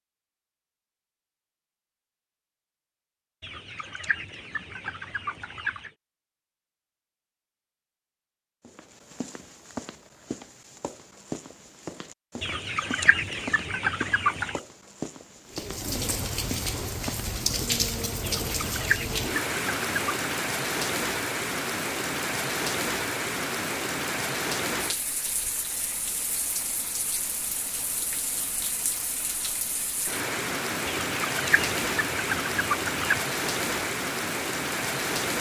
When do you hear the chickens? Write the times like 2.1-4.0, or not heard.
3.4-5.9, 12.4-14.6, 18.2-20.2, 30.9-33.2.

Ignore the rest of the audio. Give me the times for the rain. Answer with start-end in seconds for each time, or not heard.
15.5-35.3.